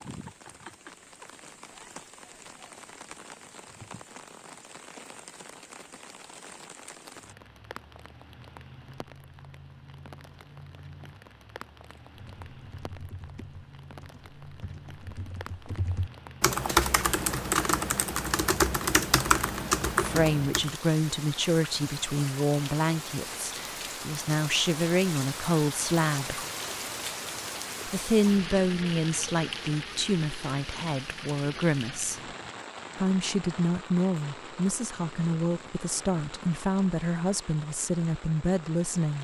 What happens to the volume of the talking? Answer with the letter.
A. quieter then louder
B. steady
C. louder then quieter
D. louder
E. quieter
B.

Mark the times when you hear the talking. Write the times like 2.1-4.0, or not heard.
19.9-26.4, 27.9-32.2, 33.0-39.1.